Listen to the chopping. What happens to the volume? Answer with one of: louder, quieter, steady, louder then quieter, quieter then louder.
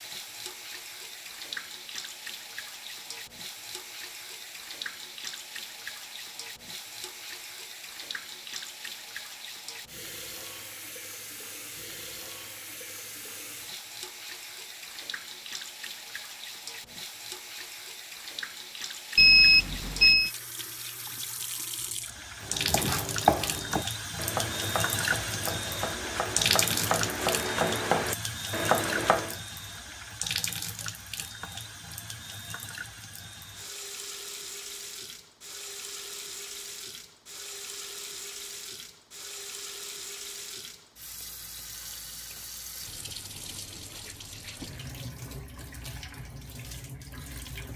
quieter then louder.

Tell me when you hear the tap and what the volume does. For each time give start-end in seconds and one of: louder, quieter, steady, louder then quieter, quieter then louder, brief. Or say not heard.
0.0-47.7 louder then quieter.